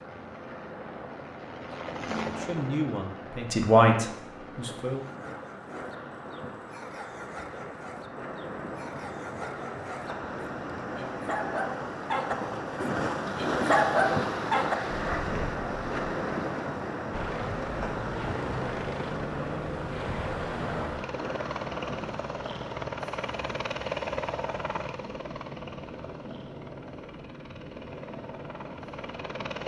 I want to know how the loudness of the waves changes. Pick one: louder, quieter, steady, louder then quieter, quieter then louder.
louder then quieter.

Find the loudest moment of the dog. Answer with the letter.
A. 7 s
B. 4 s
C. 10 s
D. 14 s
D.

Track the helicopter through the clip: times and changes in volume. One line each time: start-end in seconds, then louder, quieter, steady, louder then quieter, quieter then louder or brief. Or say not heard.
0.0-5.2 louder then quieter
17.1-29.6 quieter.